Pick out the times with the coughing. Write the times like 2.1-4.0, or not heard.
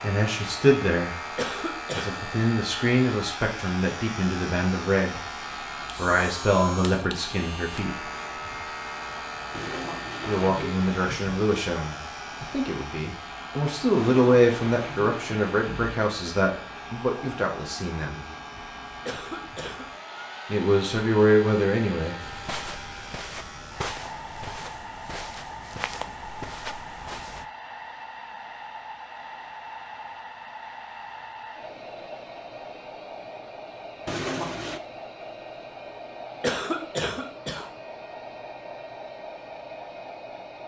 1.4-2.2, 19.1-19.9, 36.4-37.6.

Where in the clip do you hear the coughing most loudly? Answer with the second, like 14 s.
37 s.